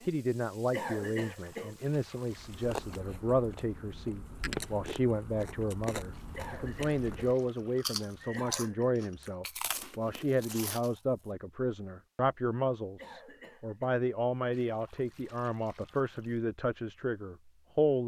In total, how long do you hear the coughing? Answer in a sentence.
You can hear the coughing for 4 seconds altogether.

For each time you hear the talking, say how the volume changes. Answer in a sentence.
The talking can be heard from 0.0 to 18.0 s, at a steady volume.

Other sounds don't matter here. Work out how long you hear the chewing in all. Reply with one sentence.
The chewing can be heard for 9 seconds in total.